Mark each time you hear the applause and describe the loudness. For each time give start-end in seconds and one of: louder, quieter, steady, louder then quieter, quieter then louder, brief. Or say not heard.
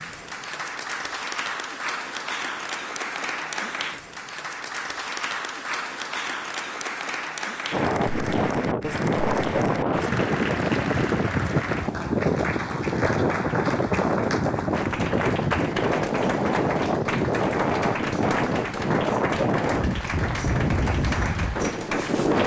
0.0-22.4 steady.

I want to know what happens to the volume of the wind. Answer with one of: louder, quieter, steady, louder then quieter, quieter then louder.
steady.